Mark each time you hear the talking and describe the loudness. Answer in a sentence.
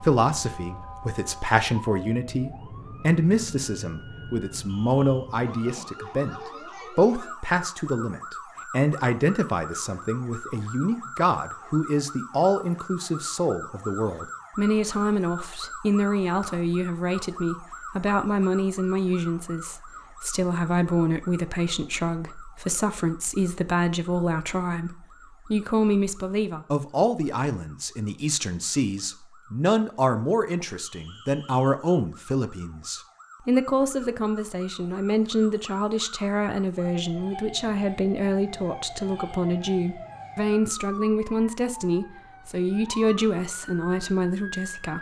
The talking can be heard from 0.0 to 44.9 s, at a steady volume.